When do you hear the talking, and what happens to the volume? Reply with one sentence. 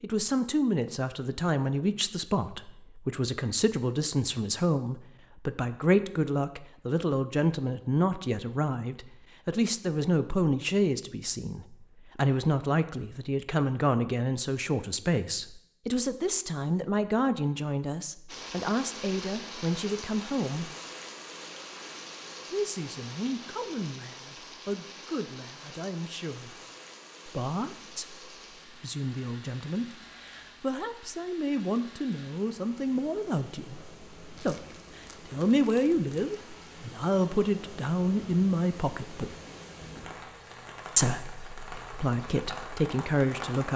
You can hear the talking from 0.0 to 20.7 s, at a steady volume; from 22.5 to 26.6 s, at a steady volume; from 27.2 to 39.4 s, getting louder; and briefly from 41.0 to 43.7 s.